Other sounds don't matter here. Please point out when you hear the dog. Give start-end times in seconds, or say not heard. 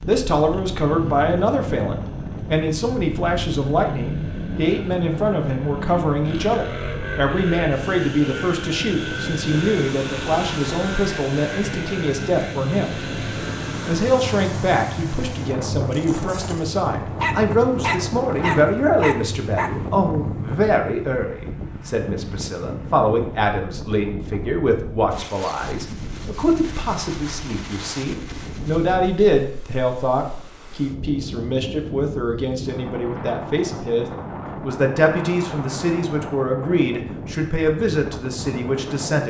17.2-19.8.